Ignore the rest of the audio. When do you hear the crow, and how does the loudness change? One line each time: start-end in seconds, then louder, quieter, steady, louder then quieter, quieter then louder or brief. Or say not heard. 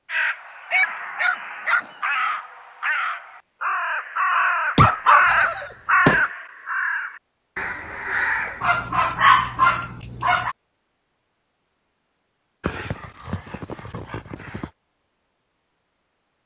0.1-8.7 louder then quieter.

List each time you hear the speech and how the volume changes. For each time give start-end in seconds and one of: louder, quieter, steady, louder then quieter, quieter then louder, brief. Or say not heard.
not heard.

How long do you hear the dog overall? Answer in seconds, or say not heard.
7 s.